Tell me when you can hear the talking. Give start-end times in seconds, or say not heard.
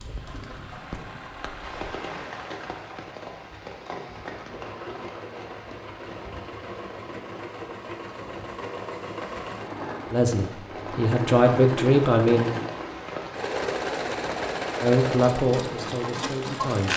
10.1-12.4, 14.8-16.9.